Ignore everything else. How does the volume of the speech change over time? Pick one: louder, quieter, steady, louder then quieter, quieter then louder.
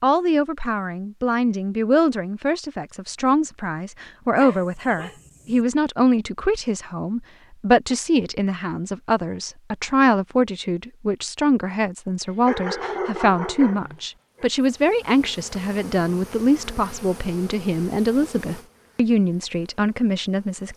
steady.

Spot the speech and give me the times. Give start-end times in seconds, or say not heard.
0.0-20.7.